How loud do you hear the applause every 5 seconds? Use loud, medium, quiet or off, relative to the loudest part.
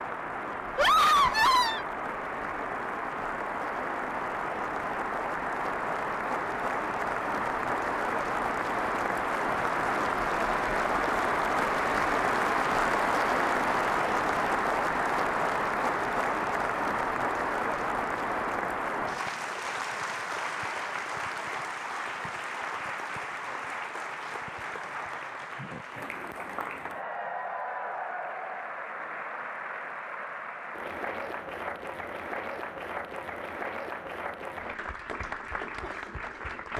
medium, loud, loud, loud, medium, medium, medium, medium.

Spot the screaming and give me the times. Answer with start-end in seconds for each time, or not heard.
0.8-1.9.